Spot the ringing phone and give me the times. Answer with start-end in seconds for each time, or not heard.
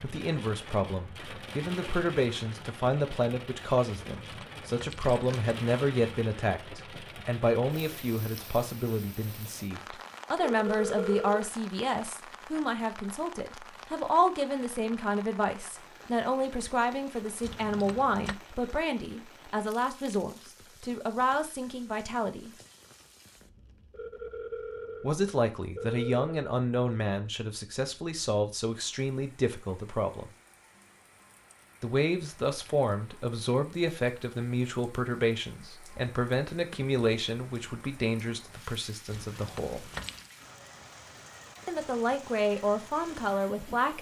10.5-11.5, 23.9-26.3.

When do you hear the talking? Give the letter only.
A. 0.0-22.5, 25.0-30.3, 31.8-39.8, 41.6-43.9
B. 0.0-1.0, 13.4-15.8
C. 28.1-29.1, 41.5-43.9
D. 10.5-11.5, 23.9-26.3
A.